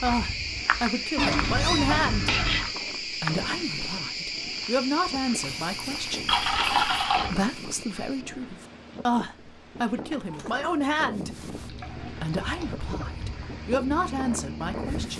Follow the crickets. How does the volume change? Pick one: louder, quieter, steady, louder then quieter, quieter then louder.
quieter then louder.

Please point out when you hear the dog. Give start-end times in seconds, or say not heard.
not heard.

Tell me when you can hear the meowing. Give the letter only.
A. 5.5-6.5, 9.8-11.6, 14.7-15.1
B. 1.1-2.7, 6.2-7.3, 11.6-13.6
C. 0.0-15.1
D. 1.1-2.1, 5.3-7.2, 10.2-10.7
D.